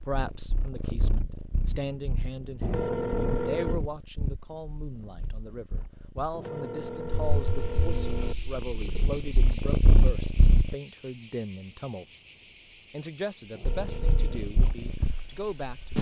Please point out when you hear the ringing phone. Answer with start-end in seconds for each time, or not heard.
2.6-3.8, 6.3-8.3, 13.5-14.4.